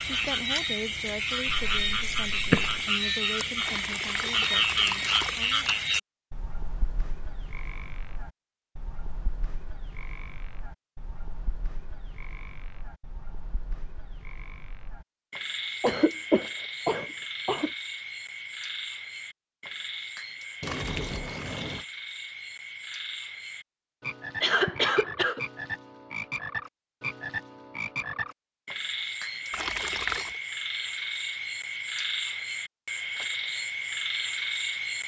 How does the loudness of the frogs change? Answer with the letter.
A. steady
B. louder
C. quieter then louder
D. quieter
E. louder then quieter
C.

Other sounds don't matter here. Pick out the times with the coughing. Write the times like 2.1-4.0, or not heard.
1.4-2.8, 15.8-17.7, 24.4-25.4.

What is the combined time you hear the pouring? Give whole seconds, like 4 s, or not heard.
4 s.